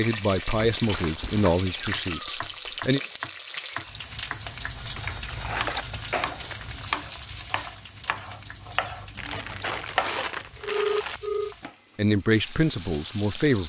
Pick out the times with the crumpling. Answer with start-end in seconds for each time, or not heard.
0.8-1.6, 5.0-6.8, 9.2-11.2.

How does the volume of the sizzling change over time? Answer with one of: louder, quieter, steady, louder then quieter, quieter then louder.
quieter.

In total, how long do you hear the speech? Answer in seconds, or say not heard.
5 s.